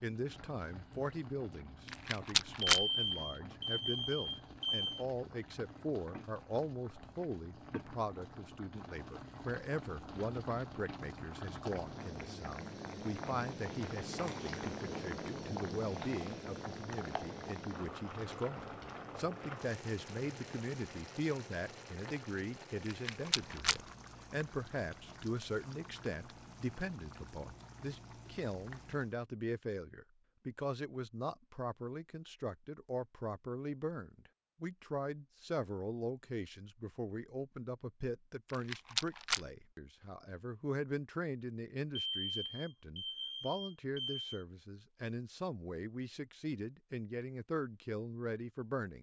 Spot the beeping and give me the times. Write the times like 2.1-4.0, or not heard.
2.7-5.0, 42.0-44.4.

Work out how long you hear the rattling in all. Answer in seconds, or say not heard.
3 s.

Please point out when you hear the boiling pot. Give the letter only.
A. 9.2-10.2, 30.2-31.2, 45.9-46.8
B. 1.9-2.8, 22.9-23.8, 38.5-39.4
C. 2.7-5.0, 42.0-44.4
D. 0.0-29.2
D.